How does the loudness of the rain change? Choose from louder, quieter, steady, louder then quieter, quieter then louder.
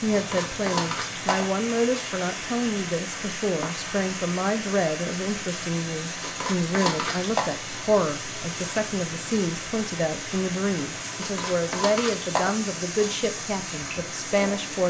steady.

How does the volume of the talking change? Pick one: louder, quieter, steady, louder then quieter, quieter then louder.
steady.